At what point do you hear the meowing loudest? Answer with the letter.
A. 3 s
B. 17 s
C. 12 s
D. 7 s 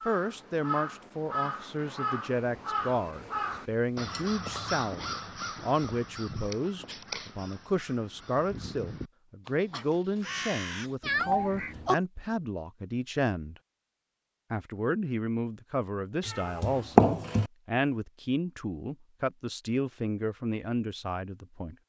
B.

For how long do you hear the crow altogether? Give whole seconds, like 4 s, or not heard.
12 s.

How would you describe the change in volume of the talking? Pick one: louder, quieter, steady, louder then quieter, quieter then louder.
steady.